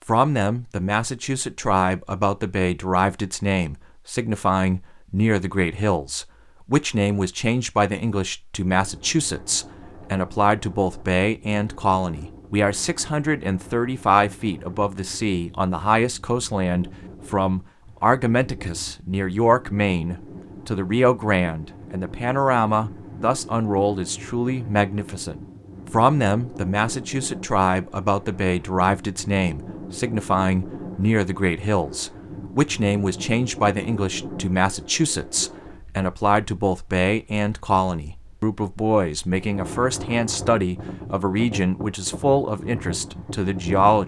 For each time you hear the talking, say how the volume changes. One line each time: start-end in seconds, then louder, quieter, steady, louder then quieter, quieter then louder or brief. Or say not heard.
0.1-44.0 steady.